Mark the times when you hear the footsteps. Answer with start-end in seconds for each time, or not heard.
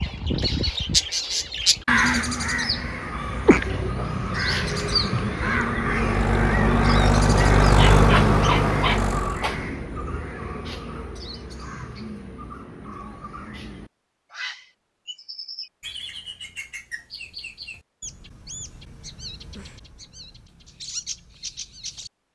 not heard.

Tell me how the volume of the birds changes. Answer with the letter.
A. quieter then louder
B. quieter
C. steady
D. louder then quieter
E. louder
B.